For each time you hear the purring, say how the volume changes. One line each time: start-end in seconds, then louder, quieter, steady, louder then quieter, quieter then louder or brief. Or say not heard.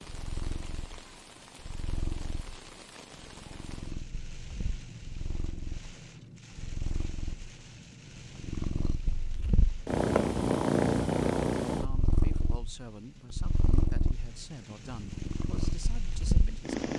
0.0-16.9 louder then quieter.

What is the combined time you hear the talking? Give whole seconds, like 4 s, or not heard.
5 s.